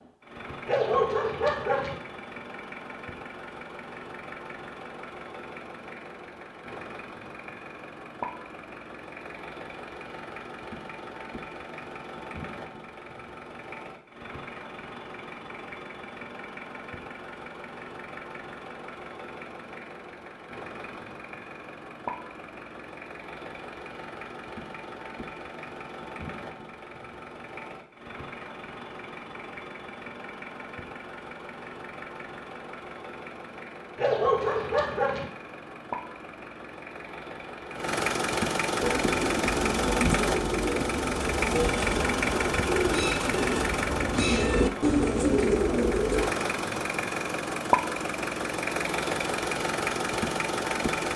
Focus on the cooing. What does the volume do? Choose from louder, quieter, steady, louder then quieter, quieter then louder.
louder.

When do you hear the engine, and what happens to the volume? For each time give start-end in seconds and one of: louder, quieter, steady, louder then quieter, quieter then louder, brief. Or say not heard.
0.0-51.1 louder.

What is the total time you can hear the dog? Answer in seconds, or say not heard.
3 s.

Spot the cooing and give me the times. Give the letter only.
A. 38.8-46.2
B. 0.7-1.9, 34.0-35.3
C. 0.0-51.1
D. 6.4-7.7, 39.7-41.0
A.